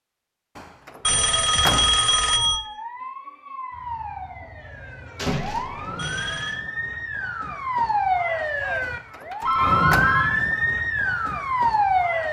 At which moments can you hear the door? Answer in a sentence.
The door can be heard from 0.6 to 2.0 s, from 5.2 to 6.0 s and from 8.8 to 10.2 s.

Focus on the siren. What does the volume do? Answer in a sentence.
The volume of the siren goes up.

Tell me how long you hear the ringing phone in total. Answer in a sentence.
You can hear the ringing phone for 3 seconds altogether.